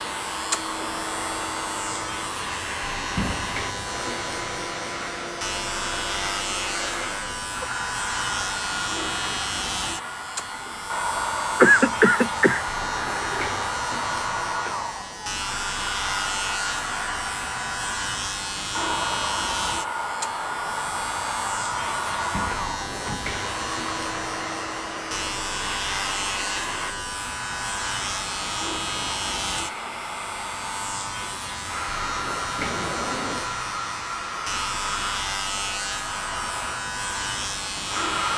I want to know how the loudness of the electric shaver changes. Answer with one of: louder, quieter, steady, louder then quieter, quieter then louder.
steady.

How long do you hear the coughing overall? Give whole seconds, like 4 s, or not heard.
2 s.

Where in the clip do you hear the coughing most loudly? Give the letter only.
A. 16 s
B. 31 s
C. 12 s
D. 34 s
C.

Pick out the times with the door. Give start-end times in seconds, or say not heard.
3.1-3.7, 22.3-23.4, 32.5-33.5.